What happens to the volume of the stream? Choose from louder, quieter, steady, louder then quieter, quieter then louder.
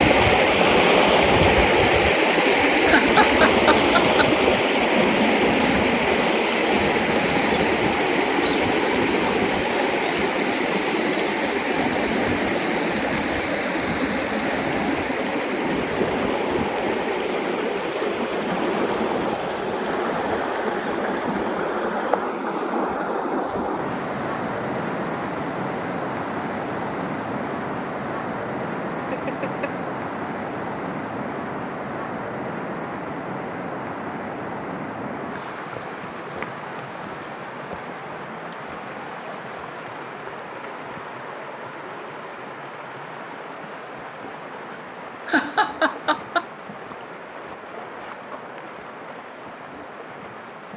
quieter.